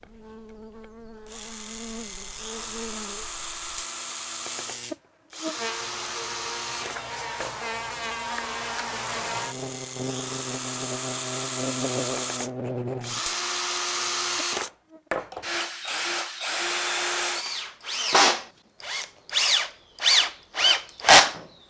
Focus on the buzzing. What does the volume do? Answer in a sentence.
The volume of the buzzing goes up.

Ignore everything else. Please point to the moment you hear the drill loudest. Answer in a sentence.
The volume of the drill peaks at 21 seconds.